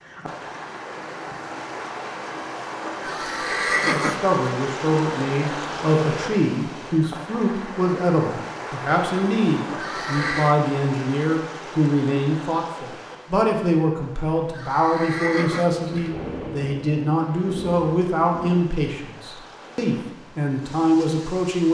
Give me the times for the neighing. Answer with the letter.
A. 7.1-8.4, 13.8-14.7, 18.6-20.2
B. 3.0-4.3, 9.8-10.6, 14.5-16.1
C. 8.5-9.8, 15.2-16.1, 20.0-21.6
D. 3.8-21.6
B.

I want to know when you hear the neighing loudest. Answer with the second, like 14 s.
4 s.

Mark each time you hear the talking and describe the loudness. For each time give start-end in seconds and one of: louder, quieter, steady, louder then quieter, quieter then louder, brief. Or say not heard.
3.8-21.6 steady.